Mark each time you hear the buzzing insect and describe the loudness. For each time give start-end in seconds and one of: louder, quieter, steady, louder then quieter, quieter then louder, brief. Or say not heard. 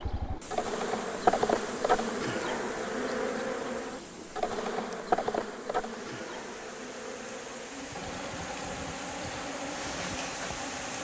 0.0-10.9 quieter.